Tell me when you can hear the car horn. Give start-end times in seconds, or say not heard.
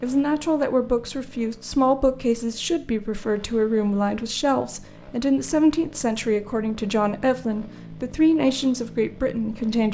not heard.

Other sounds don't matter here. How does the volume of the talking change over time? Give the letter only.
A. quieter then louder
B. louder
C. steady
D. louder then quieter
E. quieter
C.